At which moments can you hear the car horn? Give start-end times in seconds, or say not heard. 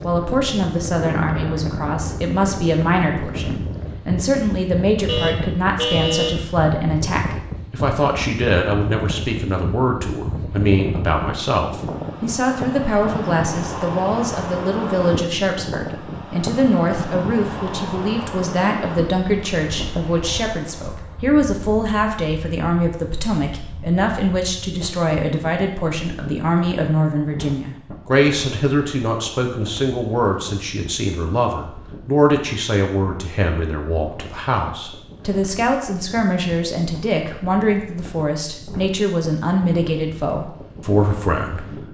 5.0-6.4.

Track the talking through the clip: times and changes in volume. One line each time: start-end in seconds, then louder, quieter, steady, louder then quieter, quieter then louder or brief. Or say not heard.
0.0-41.6 steady.